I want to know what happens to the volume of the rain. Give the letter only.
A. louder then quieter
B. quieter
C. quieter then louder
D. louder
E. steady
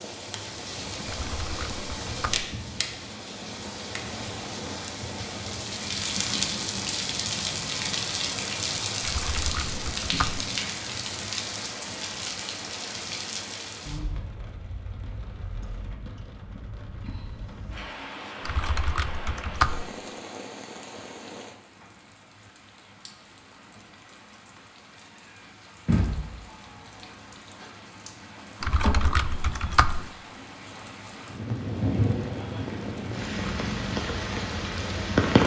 C.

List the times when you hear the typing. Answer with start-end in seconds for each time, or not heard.
1.1-2.5, 9.0-10.5, 18.4-19.9, 28.6-30.1.